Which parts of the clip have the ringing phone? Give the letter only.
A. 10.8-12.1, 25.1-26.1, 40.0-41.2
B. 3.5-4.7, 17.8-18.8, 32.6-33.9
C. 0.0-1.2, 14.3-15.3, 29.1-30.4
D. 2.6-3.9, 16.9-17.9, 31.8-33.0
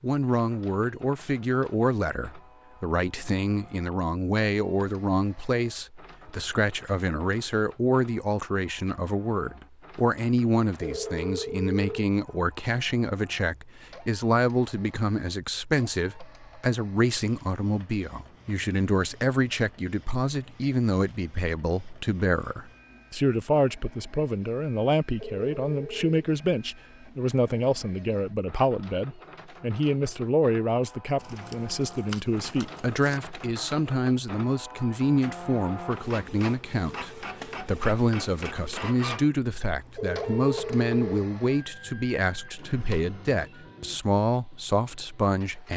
A.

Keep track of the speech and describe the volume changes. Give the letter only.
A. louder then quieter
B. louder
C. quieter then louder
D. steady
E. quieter
D.